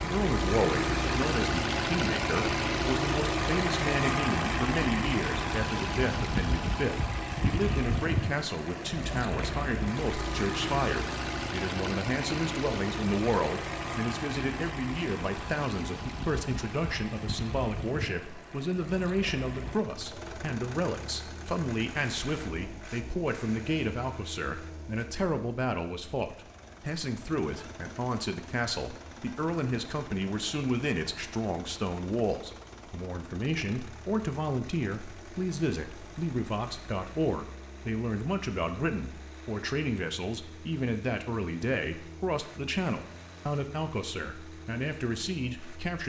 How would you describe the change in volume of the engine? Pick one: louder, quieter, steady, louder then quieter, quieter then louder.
quieter.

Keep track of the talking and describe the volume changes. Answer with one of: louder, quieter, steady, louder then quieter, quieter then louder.
steady.